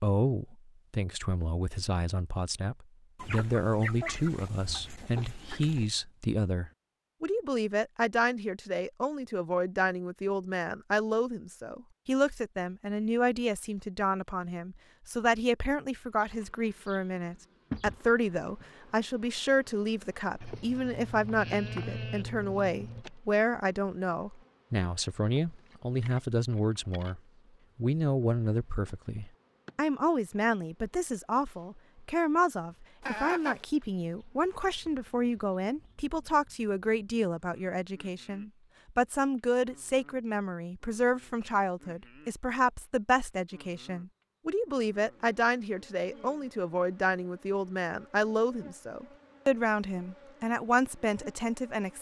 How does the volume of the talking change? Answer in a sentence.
The volume of the talking stays about the same.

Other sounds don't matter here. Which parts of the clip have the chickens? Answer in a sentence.
You can hear the chickens from 3.1 to 5.9 s and from 33.0 to 33.6 s.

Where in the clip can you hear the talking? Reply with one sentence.
You can hear the talking from 0.0 to 51.9 s.